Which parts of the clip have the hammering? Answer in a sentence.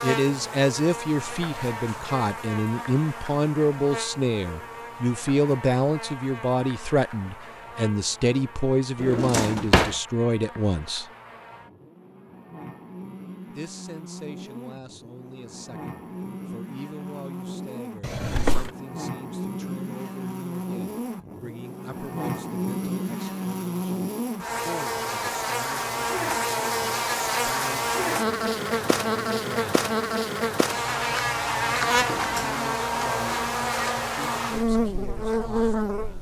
You can't hear the hammering here.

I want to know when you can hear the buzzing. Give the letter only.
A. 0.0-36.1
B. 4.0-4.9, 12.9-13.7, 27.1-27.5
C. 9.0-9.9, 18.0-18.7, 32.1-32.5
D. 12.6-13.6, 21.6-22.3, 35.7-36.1
A.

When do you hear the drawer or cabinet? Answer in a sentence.
The drawer or cabinet can be heard from 9.0 to 9.9 s, from 18.0 to 18.7 s and from 32.1 to 32.5 s.